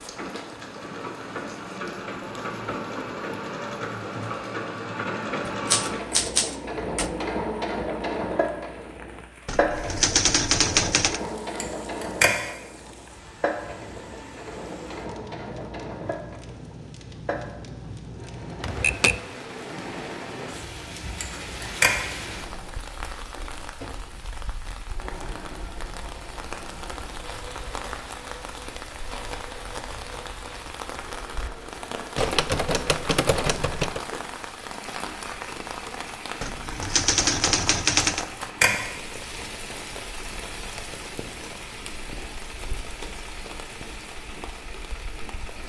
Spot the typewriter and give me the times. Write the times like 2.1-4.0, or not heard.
5.7-7.2, 9.4-11.2, 18.6-19.2, 32.1-34.0, 36.4-38.2.